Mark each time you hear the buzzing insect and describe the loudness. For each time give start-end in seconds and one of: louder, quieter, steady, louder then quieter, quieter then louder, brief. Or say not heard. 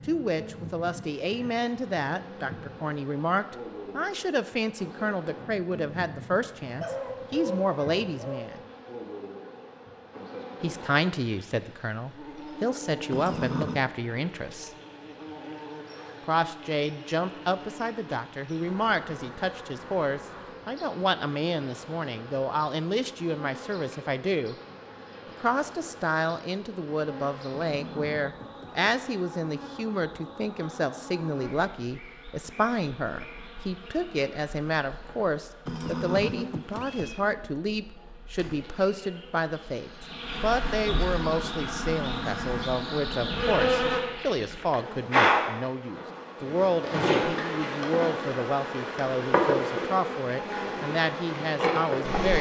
0.0-52.3 louder.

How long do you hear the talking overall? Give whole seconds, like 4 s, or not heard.
48 s.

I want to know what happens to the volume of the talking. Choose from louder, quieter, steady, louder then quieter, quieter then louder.
steady.